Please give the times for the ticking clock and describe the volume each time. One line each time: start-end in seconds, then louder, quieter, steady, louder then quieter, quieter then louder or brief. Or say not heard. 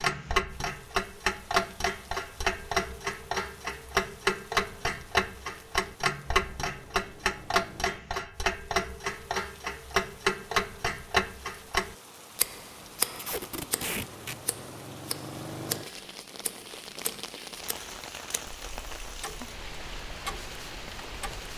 0.0-21.4 quieter.